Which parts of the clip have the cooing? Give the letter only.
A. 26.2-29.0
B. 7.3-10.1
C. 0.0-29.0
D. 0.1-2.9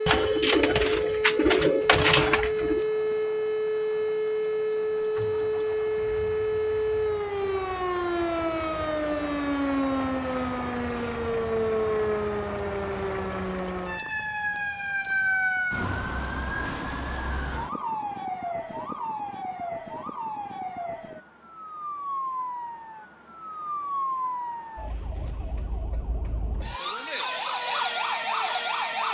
D.